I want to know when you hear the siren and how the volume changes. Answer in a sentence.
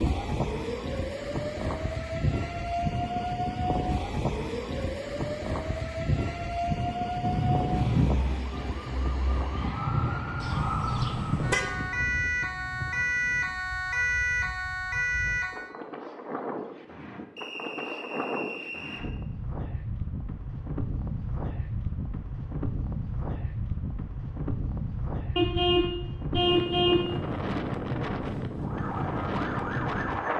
The siren can be heard from 0.0 to 15.8 s, getting louder; and briefly from 28.6 to 30.3 s.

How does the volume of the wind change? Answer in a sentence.
The volume of the wind goes down, then up.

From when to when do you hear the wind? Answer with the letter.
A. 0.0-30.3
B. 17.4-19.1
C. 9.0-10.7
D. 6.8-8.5
A.